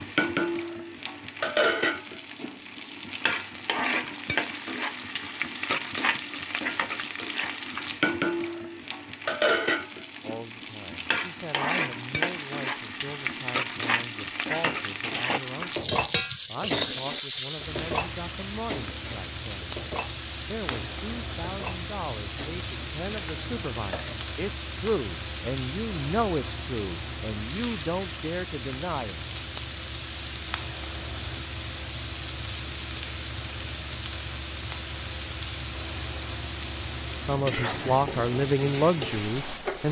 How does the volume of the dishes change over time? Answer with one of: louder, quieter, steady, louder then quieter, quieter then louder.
quieter.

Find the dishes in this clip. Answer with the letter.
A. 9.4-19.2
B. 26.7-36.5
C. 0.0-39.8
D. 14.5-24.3
D.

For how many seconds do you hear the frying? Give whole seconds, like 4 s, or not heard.
40 s.